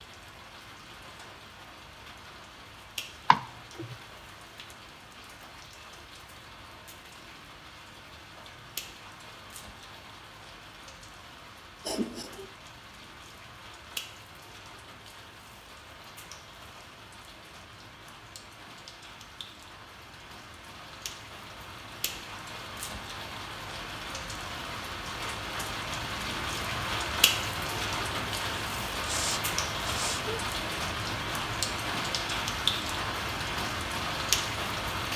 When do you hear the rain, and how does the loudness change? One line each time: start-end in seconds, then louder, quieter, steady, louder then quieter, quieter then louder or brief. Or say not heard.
0.0-35.1 louder.